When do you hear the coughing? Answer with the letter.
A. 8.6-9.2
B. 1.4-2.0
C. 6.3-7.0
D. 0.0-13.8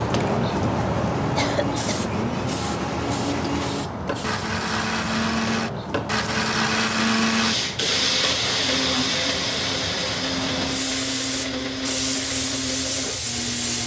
B.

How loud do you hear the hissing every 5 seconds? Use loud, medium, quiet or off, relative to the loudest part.
loud, medium, loud.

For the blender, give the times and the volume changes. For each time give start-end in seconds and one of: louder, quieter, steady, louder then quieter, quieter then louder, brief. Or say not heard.
0.1-13.8 louder then quieter.